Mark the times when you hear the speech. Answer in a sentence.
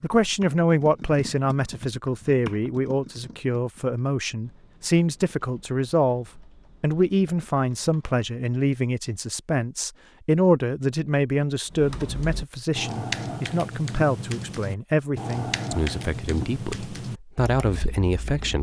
You can hear the speech from 0.0 to 18.5 s.